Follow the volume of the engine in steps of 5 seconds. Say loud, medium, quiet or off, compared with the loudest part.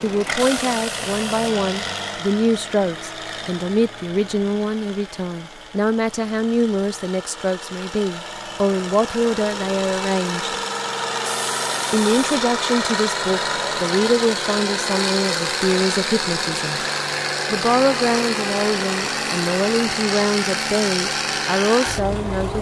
medium, medium, loud, loud, loud.